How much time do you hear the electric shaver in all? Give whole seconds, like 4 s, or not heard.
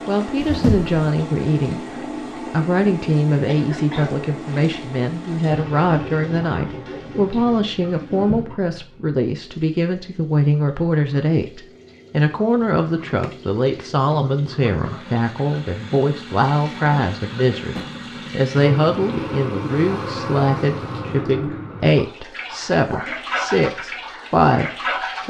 not heard.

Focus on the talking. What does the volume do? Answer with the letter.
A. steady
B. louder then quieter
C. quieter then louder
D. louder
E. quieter
A.